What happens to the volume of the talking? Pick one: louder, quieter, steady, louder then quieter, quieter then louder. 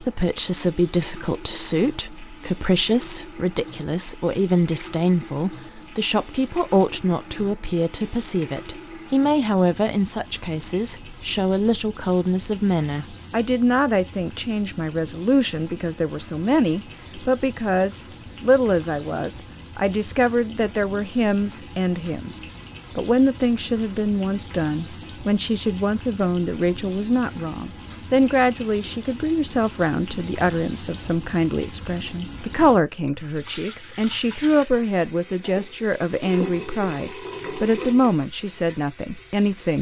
steady.